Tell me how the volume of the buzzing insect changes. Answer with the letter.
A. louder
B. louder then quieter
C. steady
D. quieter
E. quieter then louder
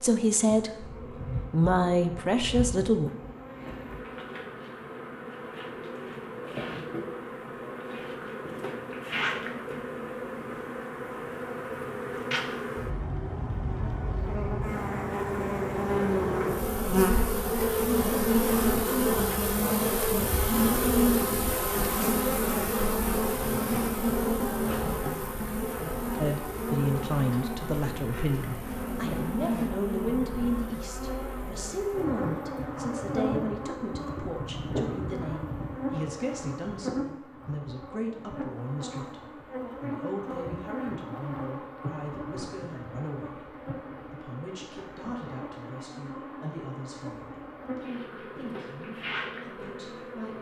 B.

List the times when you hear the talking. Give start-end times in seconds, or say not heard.
0.0-3.1, 26.1-50.3.